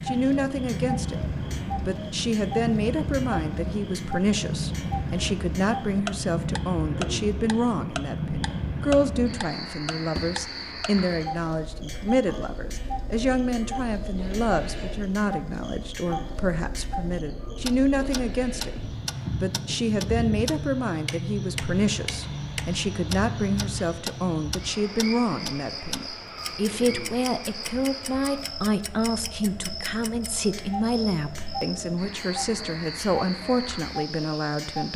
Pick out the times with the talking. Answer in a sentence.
The talking can be heard from 0.1 to 34.9 s.